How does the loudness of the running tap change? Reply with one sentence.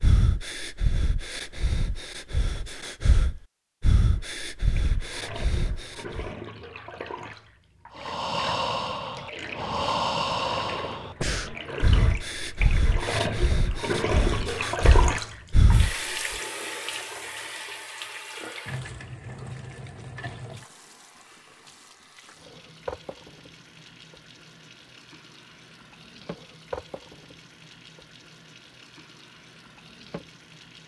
The loudness of the running tap goes up, then down.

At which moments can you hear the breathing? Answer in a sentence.
The breathing can be heard from 0.0 to 6.3 s and from 8.0 to 16.2 s.